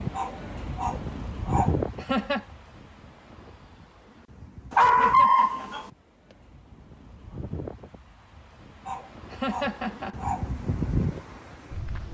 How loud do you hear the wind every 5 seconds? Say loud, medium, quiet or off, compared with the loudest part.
loud, quiet, loud.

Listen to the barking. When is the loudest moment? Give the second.
5 s.